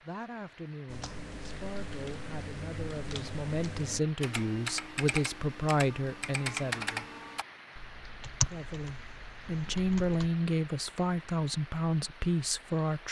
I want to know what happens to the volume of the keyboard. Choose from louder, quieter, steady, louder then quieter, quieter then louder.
louder.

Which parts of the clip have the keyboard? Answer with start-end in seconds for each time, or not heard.
0.8-10.3.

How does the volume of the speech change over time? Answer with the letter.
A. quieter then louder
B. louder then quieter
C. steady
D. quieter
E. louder
E.